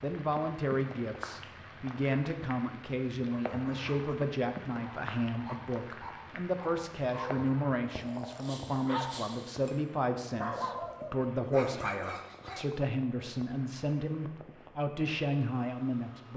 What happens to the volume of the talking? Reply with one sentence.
The loudness of the talking stays about the same.